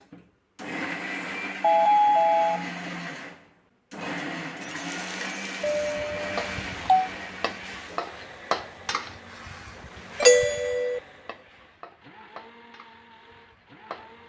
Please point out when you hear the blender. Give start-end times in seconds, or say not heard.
0.0-14.2.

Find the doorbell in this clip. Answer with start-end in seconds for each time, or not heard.
1.6-2.7, 5.6-7.1, 10.2-11.0.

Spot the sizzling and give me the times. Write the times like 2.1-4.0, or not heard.
4.6-14.2.